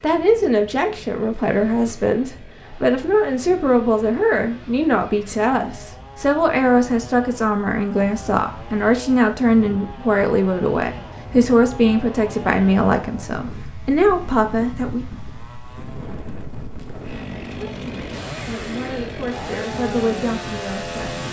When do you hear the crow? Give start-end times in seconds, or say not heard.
not heard.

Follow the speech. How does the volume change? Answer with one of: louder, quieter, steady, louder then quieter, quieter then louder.
quieter.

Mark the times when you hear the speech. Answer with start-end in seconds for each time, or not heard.
0.0-15.1, 17.6-21.0.